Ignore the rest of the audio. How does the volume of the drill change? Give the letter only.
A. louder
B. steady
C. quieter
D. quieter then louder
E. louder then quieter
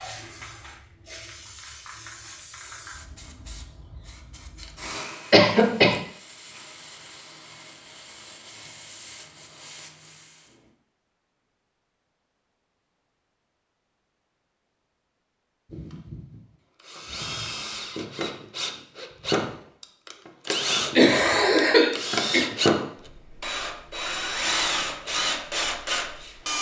A.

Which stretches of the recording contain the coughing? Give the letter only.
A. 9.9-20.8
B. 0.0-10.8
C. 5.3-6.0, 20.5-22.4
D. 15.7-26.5
C.